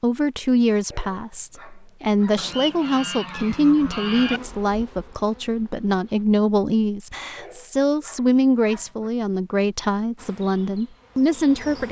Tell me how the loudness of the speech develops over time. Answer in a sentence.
The loudness of the speech stays about the same.